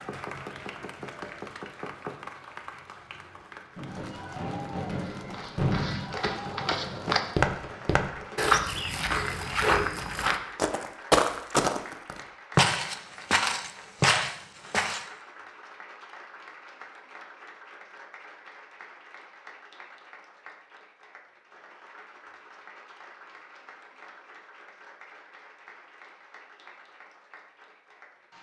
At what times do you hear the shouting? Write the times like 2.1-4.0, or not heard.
not heard.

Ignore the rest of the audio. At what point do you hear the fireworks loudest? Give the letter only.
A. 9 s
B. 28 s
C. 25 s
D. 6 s
D.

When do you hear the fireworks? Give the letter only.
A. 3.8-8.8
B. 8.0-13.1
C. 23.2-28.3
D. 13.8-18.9
A.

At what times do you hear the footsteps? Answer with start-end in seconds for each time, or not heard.
5.0-15.1.